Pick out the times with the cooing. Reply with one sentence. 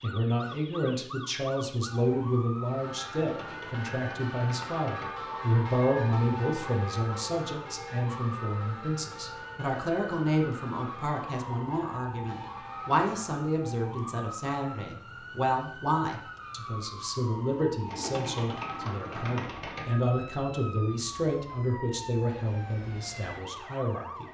The cooing can be heard from 3.2 to 5.1 s and from 17.9 to 19.9 s.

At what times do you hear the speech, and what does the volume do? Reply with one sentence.
You can hear the speech from 0.0 to 24.2 s, at a steady volume.